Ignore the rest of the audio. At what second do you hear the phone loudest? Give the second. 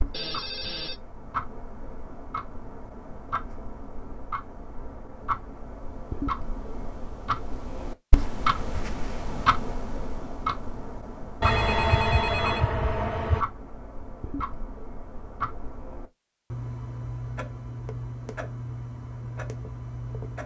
12 s.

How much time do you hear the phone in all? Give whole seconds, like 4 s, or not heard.
3 s.